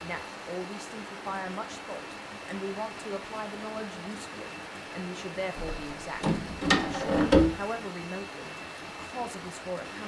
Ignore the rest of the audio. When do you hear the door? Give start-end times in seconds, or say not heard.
5.5-7.5.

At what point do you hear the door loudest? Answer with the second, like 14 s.
7 s.